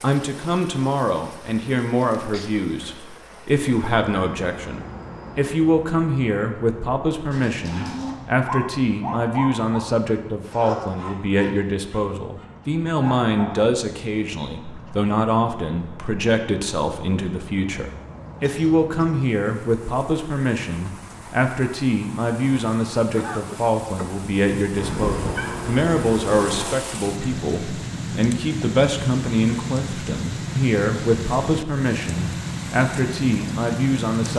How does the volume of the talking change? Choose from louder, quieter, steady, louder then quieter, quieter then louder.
steady.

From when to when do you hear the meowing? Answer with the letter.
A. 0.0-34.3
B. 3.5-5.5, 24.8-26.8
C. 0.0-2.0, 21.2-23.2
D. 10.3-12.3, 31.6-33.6
B.